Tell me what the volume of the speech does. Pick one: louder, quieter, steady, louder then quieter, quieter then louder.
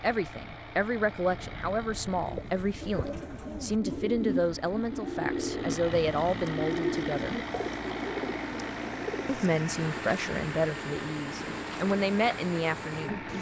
steady.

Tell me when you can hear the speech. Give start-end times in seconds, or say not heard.
0.0-7.3, 9.2-13.2.